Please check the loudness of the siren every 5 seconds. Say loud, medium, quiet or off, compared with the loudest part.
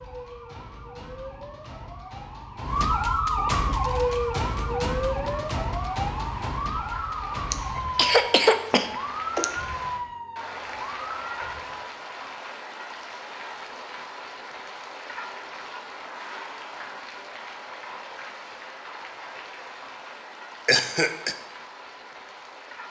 loud, loud, medium, off, off.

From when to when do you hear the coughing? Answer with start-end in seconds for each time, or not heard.
7.5-9.4, 20.6-21.4.